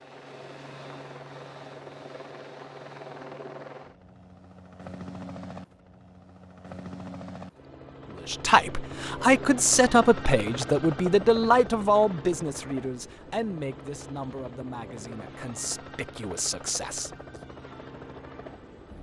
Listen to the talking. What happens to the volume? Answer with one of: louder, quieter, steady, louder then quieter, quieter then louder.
quieter.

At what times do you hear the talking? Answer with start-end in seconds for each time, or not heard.
8.2-17.1.